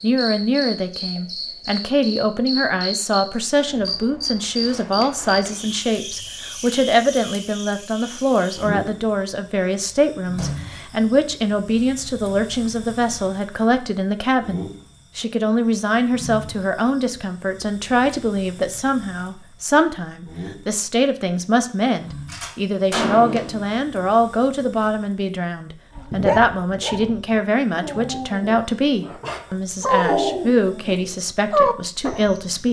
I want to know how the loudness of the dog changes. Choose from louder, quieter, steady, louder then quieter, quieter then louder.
louder.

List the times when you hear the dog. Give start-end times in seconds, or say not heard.
25.9-32.3.